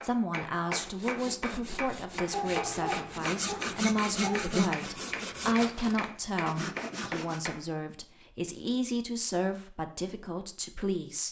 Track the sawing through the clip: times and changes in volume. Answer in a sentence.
The sawing can be heard from 0.8 to 7.4 s, getting louder then quieter.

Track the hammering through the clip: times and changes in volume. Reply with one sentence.
You can hear the hammering from 0.0 to 7.7 s, at a steady volume.